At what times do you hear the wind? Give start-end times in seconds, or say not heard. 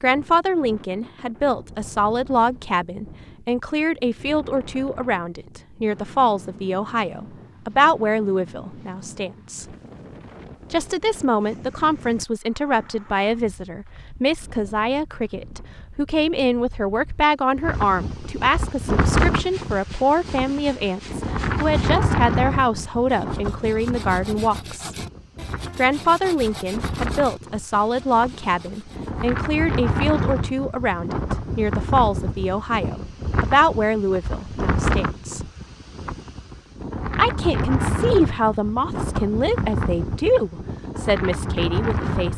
0.0-42.3.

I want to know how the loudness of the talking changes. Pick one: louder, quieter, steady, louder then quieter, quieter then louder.
steady.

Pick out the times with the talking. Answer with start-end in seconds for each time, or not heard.
0.0-9.7, 10.7-24.9, 25.8-35.4, 37.1-42.3.